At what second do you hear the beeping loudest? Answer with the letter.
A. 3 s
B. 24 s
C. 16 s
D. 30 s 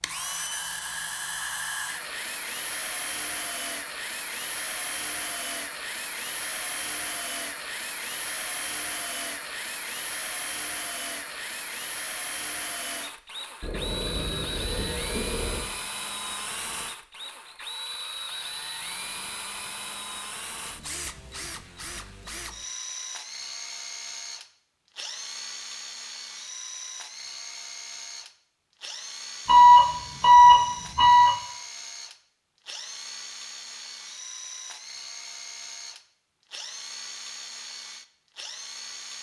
D.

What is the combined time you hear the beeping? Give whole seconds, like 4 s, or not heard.
4 s.